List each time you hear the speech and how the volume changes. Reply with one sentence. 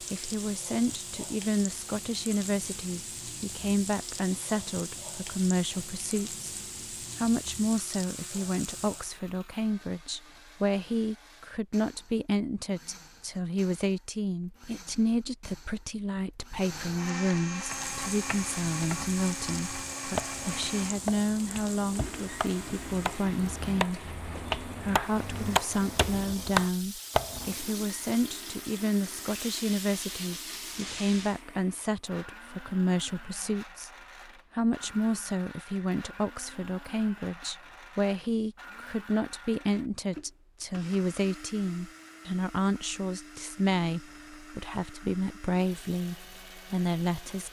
You can hear the speech from 0.0 to 6.5 s, at a steady volume; from 7.2 to 33.9 s, at a steady volume; and from 34.5 to 47.4 s, at a steady volume.